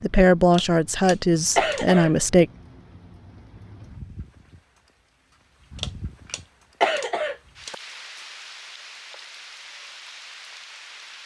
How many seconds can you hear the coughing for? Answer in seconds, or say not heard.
4 s.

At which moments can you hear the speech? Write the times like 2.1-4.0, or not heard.
0.0-2.5.